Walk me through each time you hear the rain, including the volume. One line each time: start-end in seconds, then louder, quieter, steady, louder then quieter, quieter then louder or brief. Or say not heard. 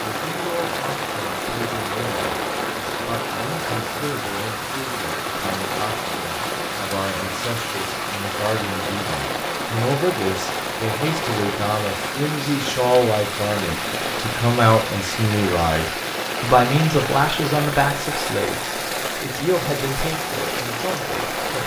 0.0-21.6 steady.